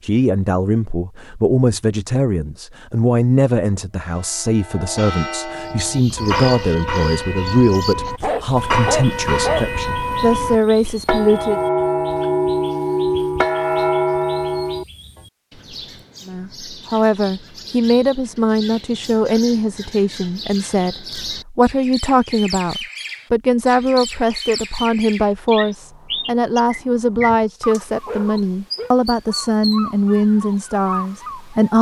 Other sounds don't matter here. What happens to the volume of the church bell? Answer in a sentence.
The volume of the church bell goes up.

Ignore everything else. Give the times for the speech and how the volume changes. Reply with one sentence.
You can hear the speech from 0.0 to 11.6 s, at a steady volume; and from 16.2 to 31.7 s, at a steady volume.